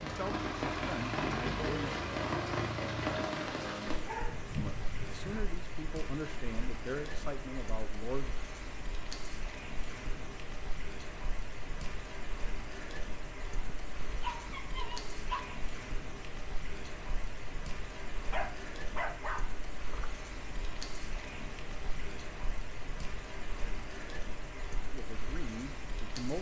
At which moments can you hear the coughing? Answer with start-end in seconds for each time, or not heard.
not heard.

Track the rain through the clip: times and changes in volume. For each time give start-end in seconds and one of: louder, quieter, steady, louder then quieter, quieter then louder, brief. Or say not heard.
0.0-26.3 quieter.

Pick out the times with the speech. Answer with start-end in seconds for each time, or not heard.
0.0-1.9, 4.5-8.3, 24.9-26.3.